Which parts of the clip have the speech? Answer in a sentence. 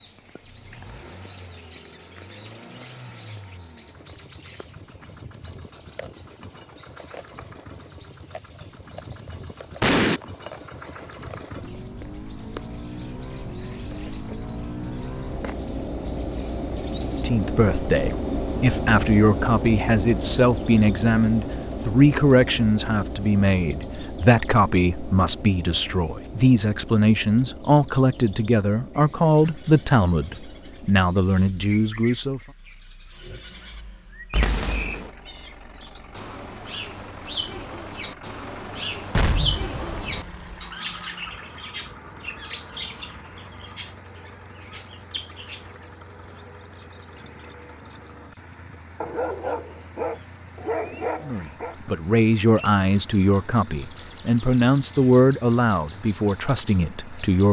The speech can be heard from 17.0 to 32.4 s and from 51.2 to 57.4 s.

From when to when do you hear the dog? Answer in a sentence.
You can hear the dog from 49.0 to 51.8 s.